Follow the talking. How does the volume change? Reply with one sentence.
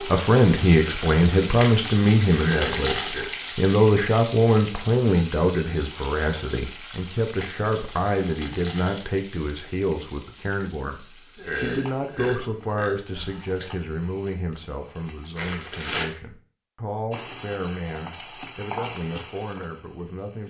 The volume of the talking goes down.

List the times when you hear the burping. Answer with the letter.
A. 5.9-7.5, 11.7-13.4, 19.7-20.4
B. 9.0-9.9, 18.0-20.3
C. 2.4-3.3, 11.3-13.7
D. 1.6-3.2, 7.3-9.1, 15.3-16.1
C.